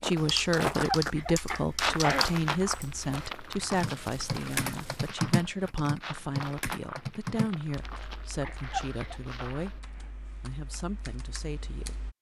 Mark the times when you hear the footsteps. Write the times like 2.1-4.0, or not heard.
0.0-9.8.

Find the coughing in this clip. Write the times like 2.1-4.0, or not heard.
0.8-2.3, 8.4-9.2.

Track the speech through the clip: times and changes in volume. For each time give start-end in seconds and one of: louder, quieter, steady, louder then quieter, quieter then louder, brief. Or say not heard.
0.0-12.0 quieter.